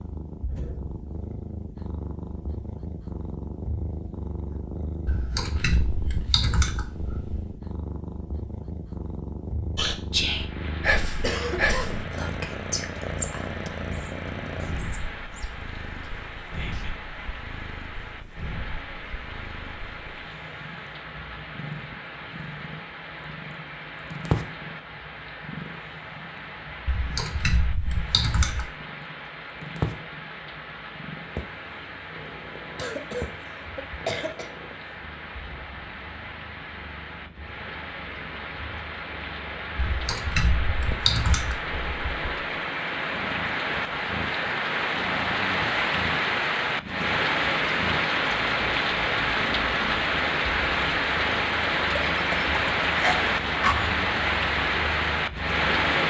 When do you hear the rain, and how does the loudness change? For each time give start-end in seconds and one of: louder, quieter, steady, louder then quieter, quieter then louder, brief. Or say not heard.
10.3-56.0 louder.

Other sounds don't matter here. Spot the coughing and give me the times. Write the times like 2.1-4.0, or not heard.
11.2-12.1, 32.8-34.5, 52.0-54.0.